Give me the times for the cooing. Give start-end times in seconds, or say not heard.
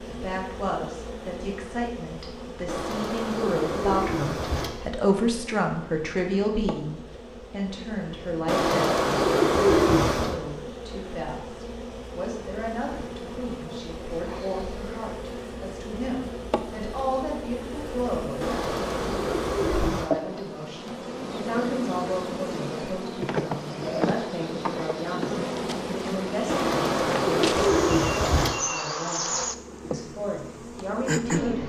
2.6-4.7, 8.4-10.4, 18.4-20.1, 26.4-28.5.